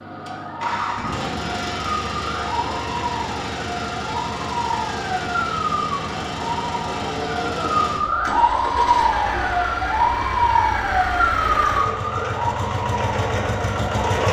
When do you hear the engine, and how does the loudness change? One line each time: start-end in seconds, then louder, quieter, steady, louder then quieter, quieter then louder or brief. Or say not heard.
0.0-14.2 steady.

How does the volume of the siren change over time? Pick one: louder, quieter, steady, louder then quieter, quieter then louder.
louder.